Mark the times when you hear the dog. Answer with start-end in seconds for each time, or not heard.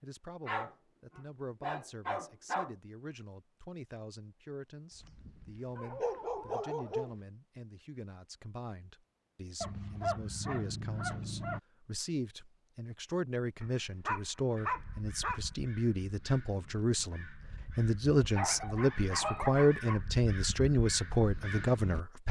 0.5-2.8, 4.9-7.2, 9.6-11.6, 13.6-15.4, 18.2-20.0.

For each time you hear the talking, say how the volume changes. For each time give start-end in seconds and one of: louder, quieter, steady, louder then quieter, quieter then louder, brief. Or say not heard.
0.0-22.2 louder.